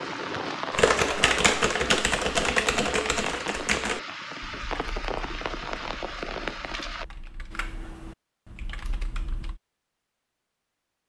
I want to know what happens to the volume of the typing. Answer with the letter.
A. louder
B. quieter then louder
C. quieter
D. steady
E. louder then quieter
C.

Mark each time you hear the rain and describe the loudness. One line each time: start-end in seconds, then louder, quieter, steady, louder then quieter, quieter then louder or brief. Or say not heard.
0.0-7.0 steady.